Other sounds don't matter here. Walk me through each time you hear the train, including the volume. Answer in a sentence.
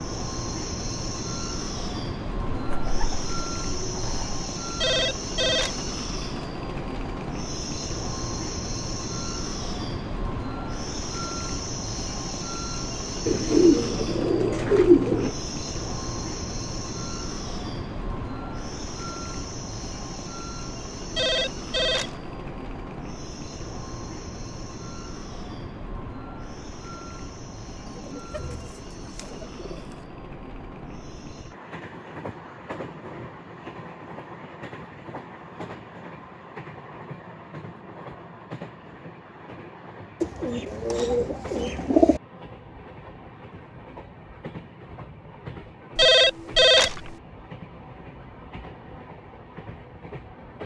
You can hear the train from 0.0 to 50.6 s, getting quieter.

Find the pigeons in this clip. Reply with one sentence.
The pigeons can be heard from 2.5 to 4.3 s, from 13.2 to 15.3 s, from 27.9 to 29.8 s and from 40.2 to 42.2 s.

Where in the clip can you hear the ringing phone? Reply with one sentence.
The ringing phone can be heard from 4.8 to 5.8 s, from 21.1 to 22.3 s and from 46.0 to 47.1 s.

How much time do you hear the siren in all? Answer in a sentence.
The siren can't be heard in this clip.